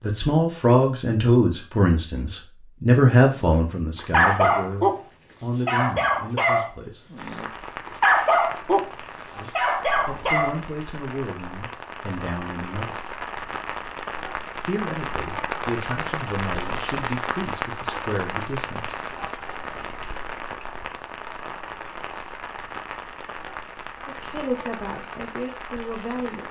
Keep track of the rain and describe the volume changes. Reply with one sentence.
The loudness of the rain goes up, then down.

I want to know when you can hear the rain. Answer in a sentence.
The rain can be heard from 7.2 to 26.4 s.